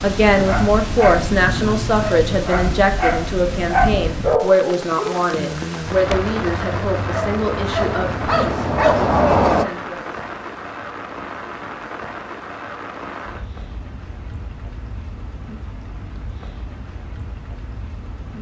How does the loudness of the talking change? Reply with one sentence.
The loudness of the talking goes down.